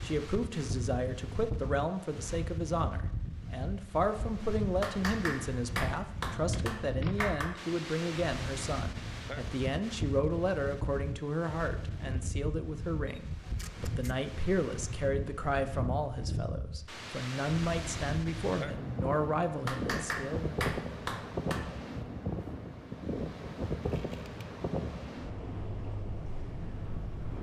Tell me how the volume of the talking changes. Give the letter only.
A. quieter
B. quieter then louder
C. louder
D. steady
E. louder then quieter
D.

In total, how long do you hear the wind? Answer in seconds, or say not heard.
27 s.